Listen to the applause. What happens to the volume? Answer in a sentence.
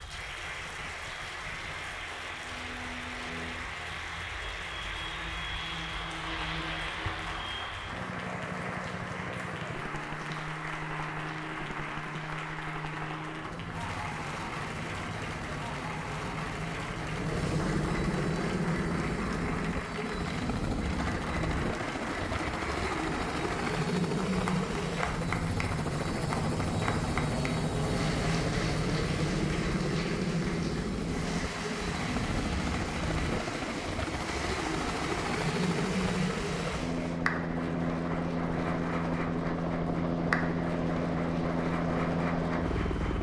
The loudness of the applause stays about the same.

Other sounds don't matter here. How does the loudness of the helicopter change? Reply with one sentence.
The volume of the helicopter goes up.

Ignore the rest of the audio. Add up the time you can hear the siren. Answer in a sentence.
The siren can't be heard in this clip.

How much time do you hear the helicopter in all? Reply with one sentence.
The helicopter can be heard for 43 seconds in total.